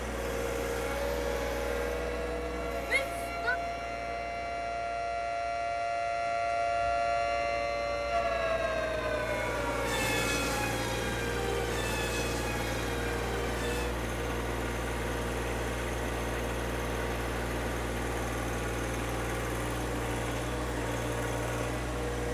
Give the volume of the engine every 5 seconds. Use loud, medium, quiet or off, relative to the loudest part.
loud, medium, loud, loud, loud.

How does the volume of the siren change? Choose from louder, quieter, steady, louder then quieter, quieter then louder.
louder then quieter.